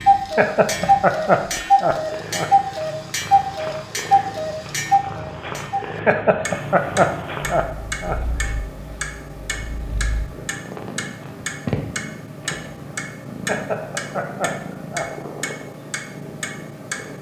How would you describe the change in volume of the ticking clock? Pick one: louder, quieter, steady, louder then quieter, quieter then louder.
quieter.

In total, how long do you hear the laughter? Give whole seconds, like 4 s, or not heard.
6 s.